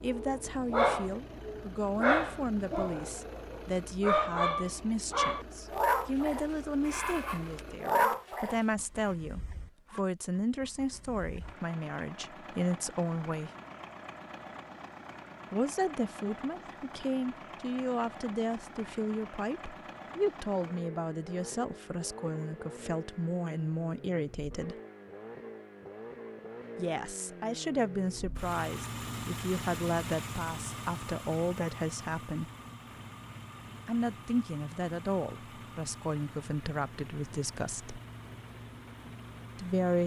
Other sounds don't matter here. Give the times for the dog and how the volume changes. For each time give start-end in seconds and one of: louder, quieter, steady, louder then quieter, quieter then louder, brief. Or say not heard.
0.1-8.6 steady.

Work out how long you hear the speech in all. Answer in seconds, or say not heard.
33 s.